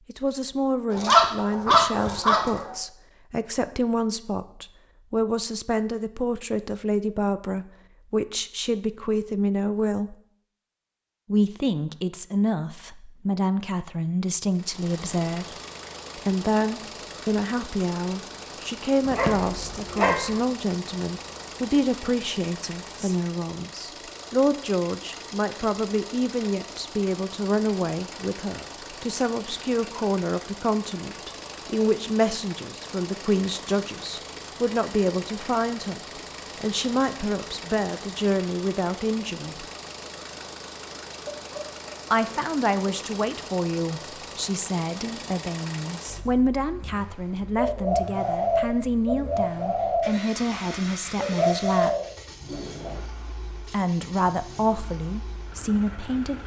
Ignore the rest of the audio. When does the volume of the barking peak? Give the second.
1 s.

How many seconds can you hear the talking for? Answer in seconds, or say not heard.
51 s.